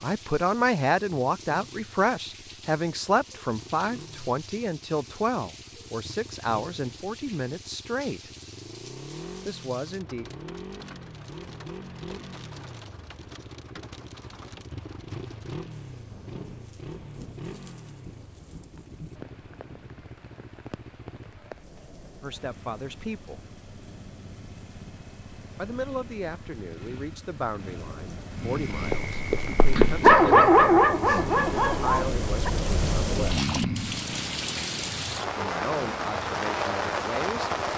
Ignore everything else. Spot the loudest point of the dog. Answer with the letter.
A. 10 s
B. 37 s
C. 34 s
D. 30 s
D.